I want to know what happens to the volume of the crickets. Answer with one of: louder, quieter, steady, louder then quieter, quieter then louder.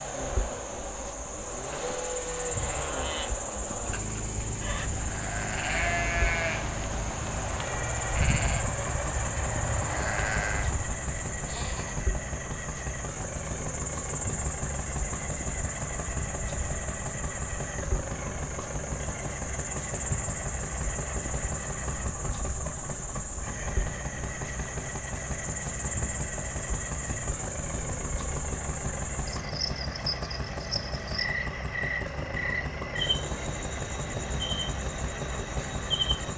steady.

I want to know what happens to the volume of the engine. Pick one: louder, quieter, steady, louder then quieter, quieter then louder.
steady.